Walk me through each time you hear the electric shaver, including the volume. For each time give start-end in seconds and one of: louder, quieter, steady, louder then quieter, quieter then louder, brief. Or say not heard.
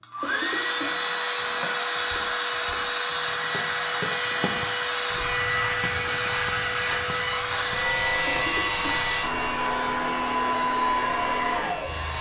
5.2-12.1 louder then quieter.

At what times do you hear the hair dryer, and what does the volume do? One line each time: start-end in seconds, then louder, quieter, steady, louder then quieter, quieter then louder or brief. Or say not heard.
0.0-12.1 steady.